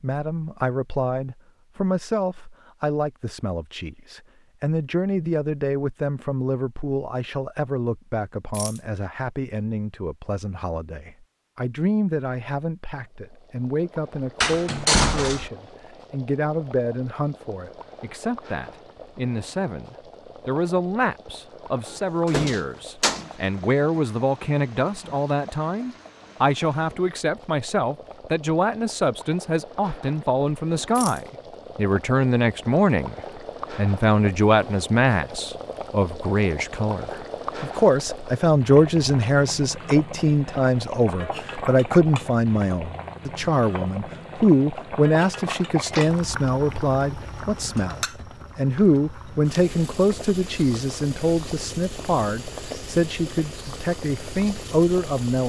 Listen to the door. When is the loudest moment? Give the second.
15 s.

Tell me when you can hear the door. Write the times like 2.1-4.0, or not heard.
14.4-15.5, 21.9-23.2, 45.8-46.2.